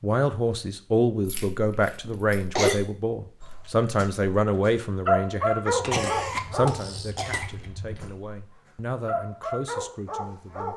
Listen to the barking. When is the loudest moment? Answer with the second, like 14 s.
5 s.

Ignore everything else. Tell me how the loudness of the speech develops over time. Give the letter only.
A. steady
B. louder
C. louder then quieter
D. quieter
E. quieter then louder
D.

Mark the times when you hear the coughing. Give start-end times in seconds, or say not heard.
2.0-2.8, 5.8-7.5.